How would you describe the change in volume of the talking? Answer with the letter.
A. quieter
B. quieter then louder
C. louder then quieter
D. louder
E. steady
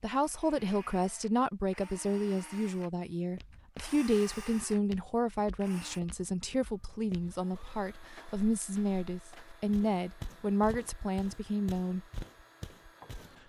E.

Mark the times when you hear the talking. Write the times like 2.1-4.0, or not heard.
0.0-12.1.